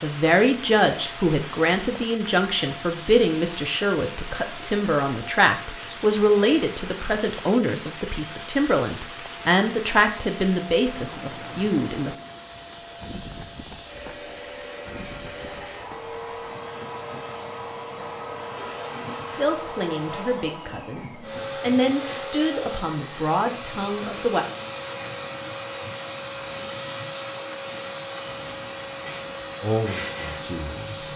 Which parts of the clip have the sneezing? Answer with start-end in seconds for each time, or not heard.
not heard.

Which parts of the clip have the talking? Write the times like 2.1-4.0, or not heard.
0.0-12.2, 19.4-24.4, 29.6-30.9.